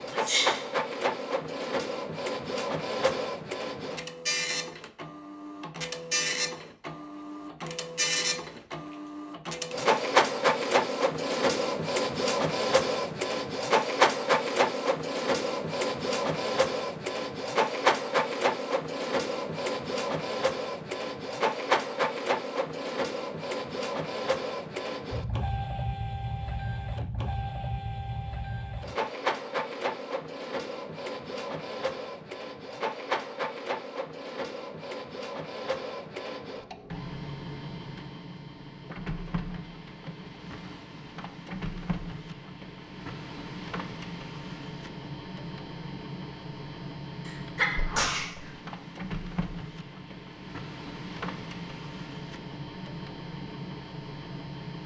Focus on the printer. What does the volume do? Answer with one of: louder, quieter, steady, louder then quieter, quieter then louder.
quieter.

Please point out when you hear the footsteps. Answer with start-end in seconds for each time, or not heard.
not heard.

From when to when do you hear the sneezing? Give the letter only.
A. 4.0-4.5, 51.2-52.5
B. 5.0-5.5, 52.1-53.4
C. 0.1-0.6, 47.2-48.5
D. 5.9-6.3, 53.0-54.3
C.